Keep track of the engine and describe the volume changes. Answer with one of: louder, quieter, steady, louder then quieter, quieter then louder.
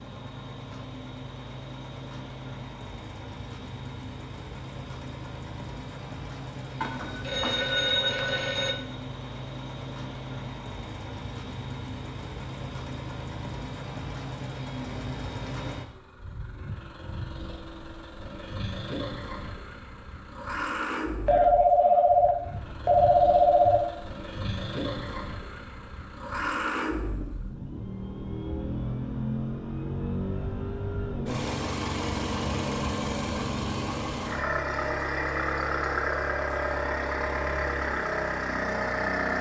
louder.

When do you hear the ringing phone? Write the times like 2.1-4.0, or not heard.
6.8-8.8, 21.2-23.8.